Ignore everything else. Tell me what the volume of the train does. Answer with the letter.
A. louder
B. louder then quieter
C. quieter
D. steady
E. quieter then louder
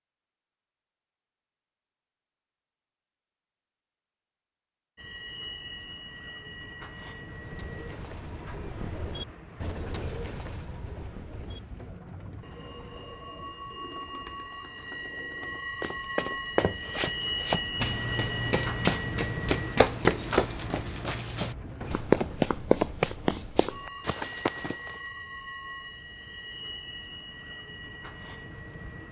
B.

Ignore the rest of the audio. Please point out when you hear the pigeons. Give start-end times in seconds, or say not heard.
7.2-15.7.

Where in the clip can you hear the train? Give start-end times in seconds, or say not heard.
5.0-29.0.